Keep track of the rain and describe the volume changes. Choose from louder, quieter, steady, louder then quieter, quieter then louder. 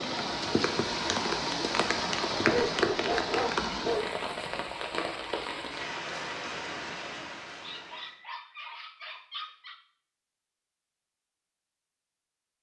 quieter.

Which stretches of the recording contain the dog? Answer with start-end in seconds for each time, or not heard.
2.5-4.1, 7.6-9.8.